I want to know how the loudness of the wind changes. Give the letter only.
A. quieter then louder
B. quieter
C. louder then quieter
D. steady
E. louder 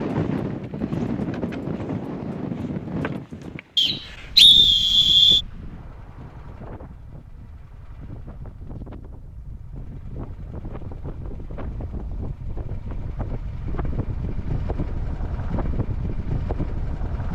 A.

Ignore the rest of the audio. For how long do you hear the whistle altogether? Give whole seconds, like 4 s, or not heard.
2 s.